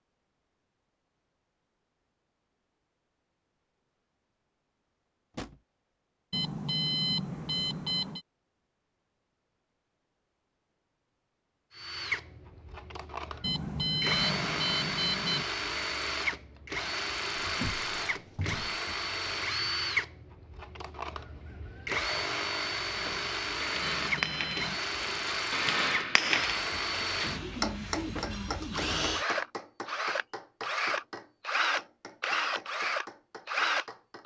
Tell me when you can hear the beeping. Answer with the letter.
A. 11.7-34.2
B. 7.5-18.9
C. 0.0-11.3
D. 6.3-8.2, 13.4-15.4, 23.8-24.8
D.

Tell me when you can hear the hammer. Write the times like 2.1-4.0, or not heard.
22.9-34.2.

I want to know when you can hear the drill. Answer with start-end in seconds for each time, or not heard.
11.7-34.2.